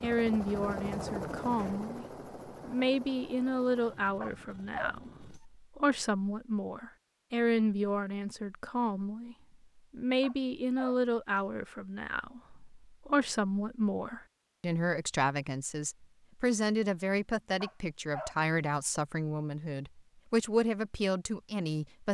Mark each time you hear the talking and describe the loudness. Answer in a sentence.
You can hear the talking briefly from 0.0 to 2.0 s; and from 2.6 to 22.1 s, at a steady volume.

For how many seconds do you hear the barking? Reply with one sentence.
The barking can be heard for 3 seconds in total.